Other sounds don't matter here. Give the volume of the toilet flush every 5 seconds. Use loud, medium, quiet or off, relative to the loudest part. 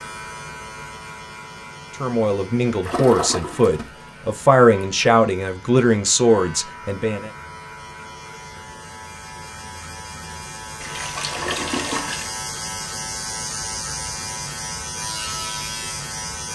loud, off, loud, off.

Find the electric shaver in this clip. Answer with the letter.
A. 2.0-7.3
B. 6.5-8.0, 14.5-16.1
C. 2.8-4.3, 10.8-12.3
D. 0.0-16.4
D.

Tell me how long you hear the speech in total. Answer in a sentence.
You can hear the speech for 5 seconds altogether.